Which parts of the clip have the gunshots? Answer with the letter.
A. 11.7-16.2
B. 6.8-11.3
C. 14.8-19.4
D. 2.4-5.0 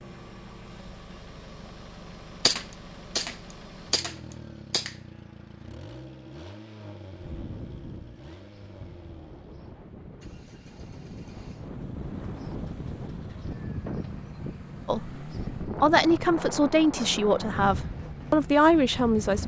D.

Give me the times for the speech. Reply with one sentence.
The speech can be heard from 14.8 to 19.4 s.